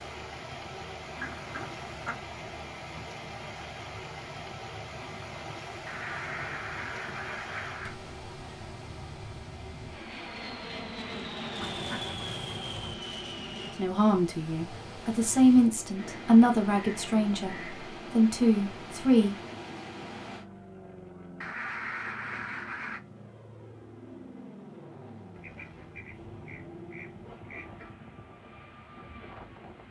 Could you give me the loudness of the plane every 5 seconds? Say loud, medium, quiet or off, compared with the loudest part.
medium, medium, loud, medium, medium, medium.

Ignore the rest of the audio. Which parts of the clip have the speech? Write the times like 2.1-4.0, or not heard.
13.8-19.4.